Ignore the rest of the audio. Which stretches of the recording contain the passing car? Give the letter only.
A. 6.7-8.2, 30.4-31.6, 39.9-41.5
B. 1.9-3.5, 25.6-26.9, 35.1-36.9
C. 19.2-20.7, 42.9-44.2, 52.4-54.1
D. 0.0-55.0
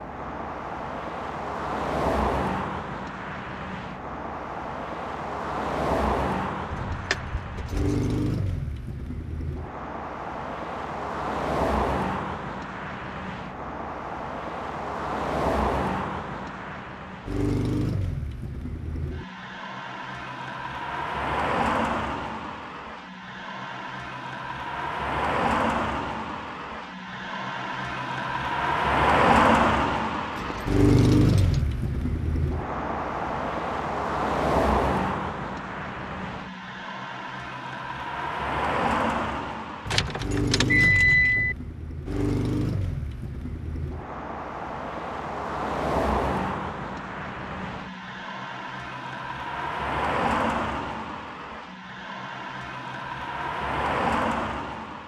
D.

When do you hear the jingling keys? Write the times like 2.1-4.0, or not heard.
6.7-8.2, 30.4-31.6, 39.9-41.5.